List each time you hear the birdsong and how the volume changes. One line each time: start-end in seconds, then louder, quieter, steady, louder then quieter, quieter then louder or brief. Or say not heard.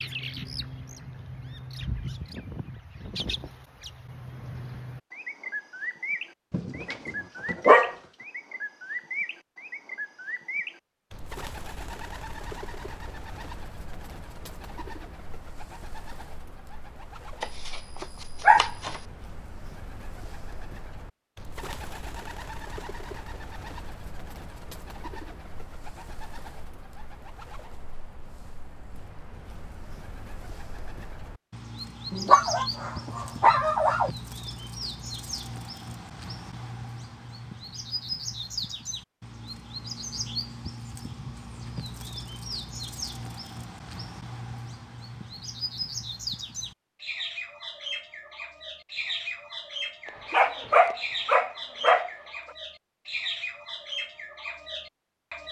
0.0-55.4 quieter then louder.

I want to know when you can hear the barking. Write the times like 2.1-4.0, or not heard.
6.5-8.0, 17.4-19.0, 32.1-34.1, 50.0-52.1.